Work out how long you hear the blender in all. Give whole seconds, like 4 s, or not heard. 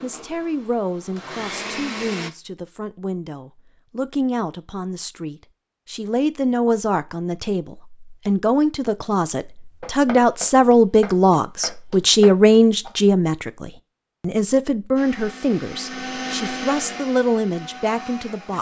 6 s.